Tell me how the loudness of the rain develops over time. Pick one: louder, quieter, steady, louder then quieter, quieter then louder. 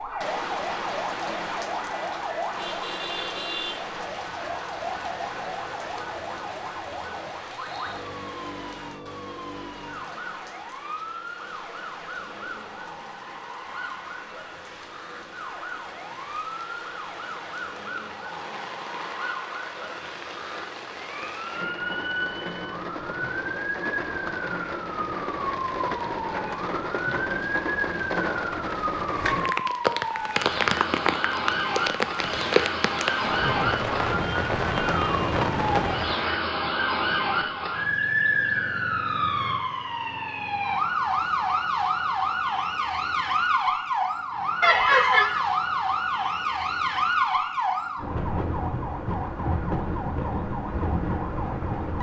quieter then louder.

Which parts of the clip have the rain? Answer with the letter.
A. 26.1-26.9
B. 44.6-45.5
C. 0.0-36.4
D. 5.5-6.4
C.